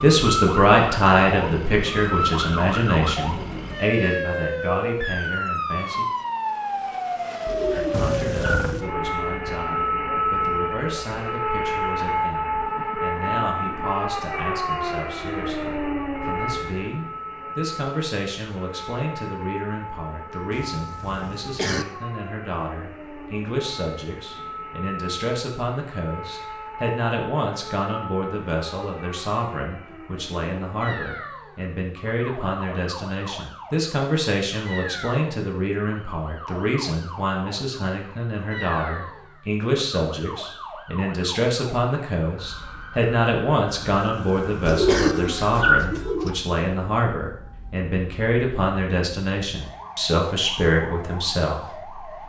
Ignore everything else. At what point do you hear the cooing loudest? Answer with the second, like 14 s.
46 s.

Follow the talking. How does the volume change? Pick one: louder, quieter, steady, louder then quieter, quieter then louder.
quieter then louder.